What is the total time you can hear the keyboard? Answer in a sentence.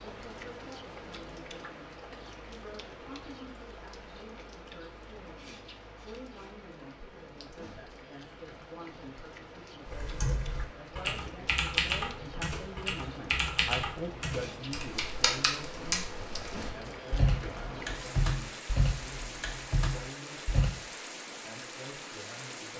You can hear the keyboard for 11 seconds altogether.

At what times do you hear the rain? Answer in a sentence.
The rain can be heard from 0.0 to 22.7 s.